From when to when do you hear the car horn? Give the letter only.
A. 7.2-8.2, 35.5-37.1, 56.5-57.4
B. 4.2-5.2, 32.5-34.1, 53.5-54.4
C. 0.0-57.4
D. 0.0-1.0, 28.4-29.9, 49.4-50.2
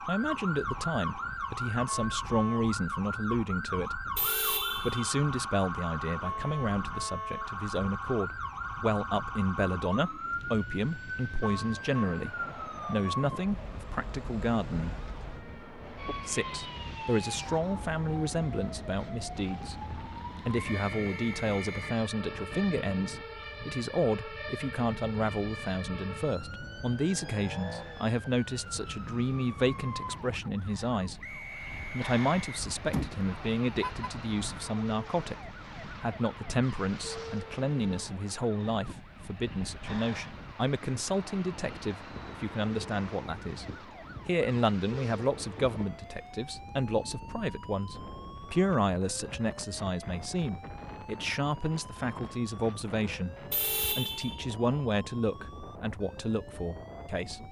B.